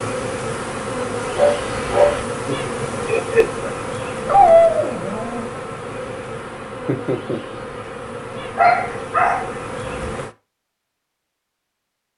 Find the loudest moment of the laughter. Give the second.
3 s.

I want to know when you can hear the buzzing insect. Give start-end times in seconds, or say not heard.
0.0-10.3.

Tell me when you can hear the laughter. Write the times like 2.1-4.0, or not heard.
2.5-3.7, 6.8-7.5.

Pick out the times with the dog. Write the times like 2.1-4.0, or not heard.
1.4-2.2, 4.2-5.5, 8.6-10.2.